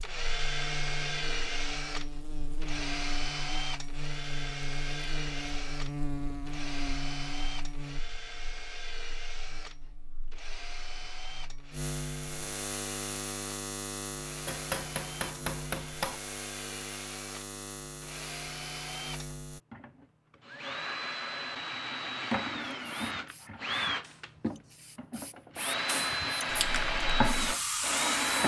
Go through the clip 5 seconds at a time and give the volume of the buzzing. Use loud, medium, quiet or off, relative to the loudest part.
loud, loud, loud, loud, off, off.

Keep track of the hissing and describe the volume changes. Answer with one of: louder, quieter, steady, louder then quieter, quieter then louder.
louder.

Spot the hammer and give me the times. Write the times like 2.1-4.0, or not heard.
14.4-16.2.